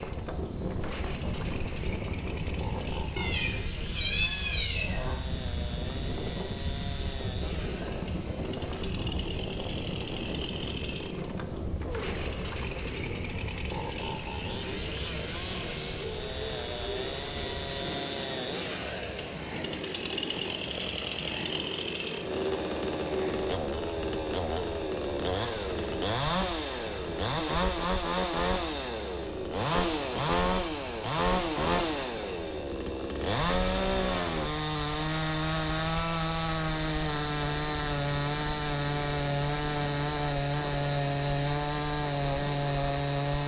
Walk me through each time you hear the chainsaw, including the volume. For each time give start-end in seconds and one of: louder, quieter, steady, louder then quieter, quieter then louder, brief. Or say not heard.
0.0-43.4 louder.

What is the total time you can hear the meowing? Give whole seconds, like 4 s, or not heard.
2 s.